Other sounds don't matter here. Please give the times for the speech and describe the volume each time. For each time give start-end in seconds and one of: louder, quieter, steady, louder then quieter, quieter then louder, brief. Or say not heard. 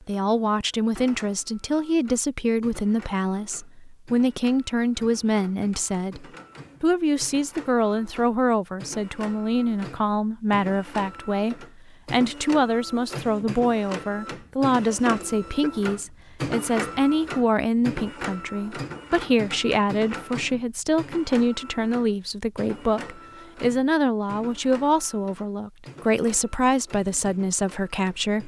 0.1-28.4 steady.